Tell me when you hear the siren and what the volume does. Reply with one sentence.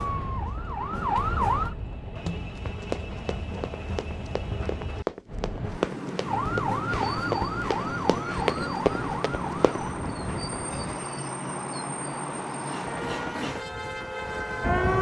You can hear the siren briefly from 0.0 to 1.8 s; from 6.2 to 11.0 s, getting quieter; and briefly from 12.8 to 14.9 s.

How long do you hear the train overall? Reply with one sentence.
You can hear the train for 15 seconds altogether.